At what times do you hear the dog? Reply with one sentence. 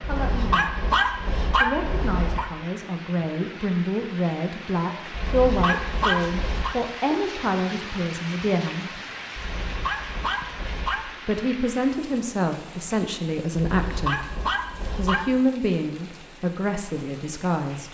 The dog can be heard from 0.0 to 2.5 s, from 5.1 to 6.8 s, from 9.3 to 11.1 s and from 13.6 to 15.4 s.